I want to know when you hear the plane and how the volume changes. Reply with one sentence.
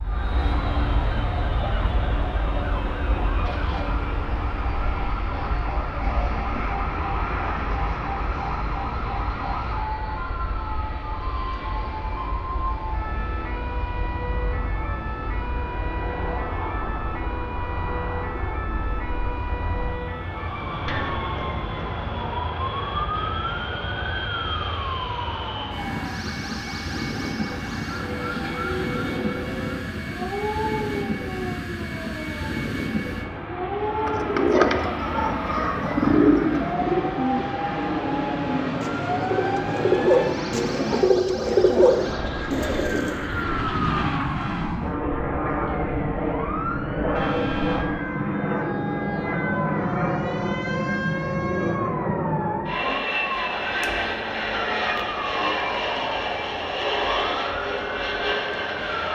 The plane can be heard from 0.0 to 59.1 s, getting louder.